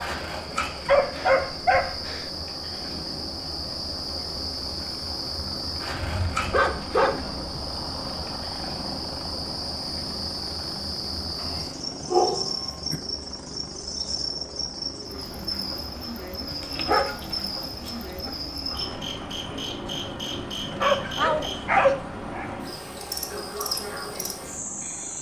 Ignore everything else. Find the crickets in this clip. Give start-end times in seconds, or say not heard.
0.0-25.1.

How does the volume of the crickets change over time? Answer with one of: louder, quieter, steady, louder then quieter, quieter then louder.
steady.